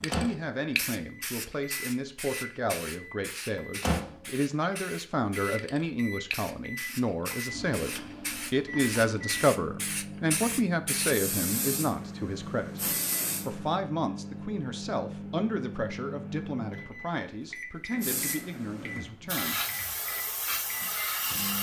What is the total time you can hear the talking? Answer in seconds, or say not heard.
19 s.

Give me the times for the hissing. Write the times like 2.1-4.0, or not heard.
0.0-13.8, 17.9-21.5.